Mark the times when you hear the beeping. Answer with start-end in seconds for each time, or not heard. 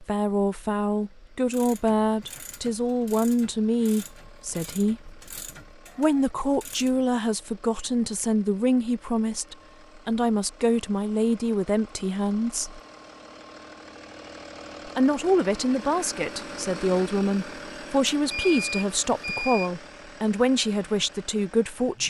18.3-19.7.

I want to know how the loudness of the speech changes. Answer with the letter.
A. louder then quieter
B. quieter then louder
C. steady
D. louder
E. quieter
C.